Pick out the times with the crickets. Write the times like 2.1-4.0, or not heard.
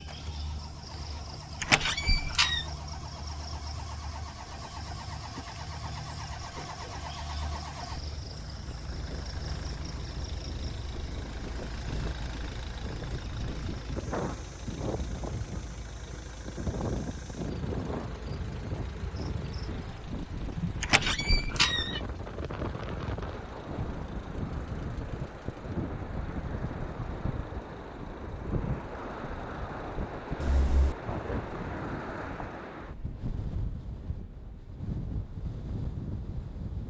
0.0-20.1.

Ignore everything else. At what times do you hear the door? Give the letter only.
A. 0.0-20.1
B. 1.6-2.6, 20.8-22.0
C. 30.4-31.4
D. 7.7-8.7
B.